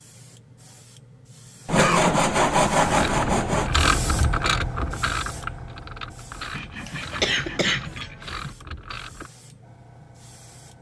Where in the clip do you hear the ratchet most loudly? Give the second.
4 s.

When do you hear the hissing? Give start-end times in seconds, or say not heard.
0.0-10.7.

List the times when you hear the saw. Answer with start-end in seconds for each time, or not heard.
1.6-3.7, 6.5-8.6.